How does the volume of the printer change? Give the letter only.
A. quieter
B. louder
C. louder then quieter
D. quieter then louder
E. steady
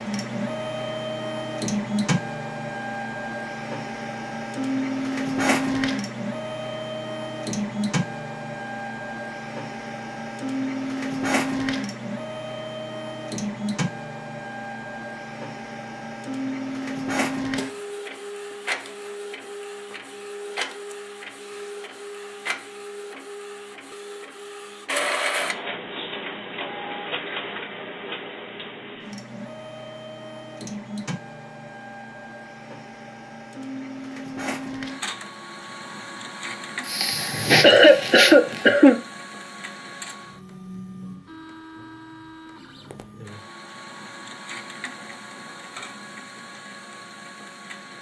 A.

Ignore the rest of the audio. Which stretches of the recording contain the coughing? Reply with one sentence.
You can hear the coughing from 36.9 to 39.0 s.